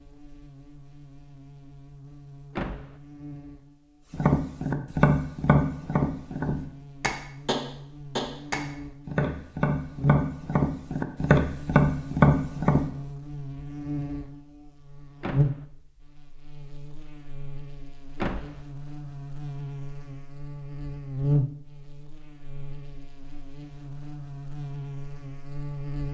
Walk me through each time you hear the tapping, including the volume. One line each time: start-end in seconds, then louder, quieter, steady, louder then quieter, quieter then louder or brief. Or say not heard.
4.1-12.8 quieter then louder.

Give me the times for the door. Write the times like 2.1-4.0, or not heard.
2.5-3.0, 15.2-15.7, 18.1-18.6.